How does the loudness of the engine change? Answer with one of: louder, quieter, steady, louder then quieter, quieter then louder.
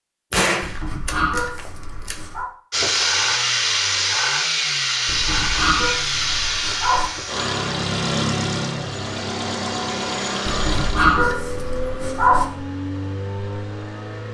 quieter.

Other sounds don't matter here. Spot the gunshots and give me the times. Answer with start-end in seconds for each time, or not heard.
0.3-2.2.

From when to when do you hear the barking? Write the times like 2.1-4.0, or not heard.
0.6-2.5, 5.0-7.1, 10.4-12.4.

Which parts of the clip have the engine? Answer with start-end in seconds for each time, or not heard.
2.7-14.2.